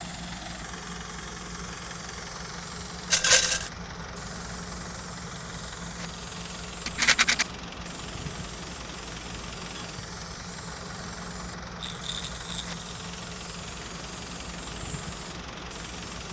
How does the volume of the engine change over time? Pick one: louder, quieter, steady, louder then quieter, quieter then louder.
steady.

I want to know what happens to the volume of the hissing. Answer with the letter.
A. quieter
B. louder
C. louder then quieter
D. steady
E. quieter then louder
D.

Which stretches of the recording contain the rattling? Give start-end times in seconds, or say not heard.
3.1-3.7, 6.8-7.5, 11.8-12.8.